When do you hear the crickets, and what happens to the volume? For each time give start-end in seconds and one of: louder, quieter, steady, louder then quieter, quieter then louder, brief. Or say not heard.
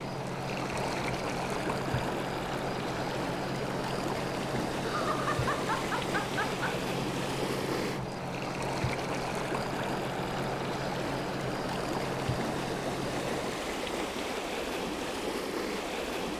0.0-13.8 steady.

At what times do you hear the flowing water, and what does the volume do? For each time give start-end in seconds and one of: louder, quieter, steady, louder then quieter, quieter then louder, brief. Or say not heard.
0.0-16.3 steady.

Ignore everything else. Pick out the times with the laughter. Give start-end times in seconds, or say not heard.
4.8-6.8.